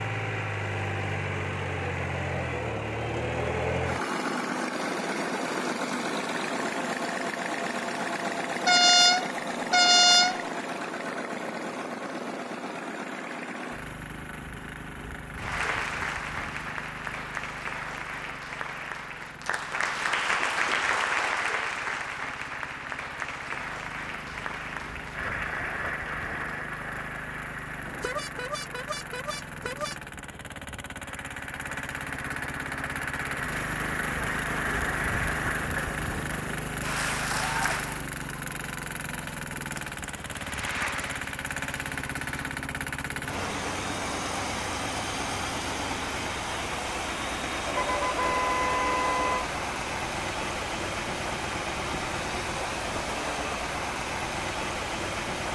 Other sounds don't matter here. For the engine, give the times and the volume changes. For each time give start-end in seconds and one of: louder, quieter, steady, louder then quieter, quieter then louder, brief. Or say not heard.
0.0-55.5 quieter then louder.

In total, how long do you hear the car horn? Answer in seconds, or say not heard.
6 s.